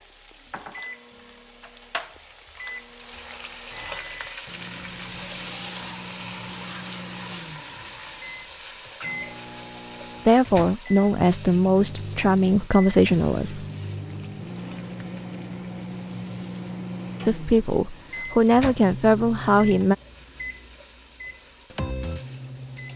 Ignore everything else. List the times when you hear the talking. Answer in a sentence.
The talking can be heard from 10.2 to 13.7 s and from 17.2 to 19.9 s.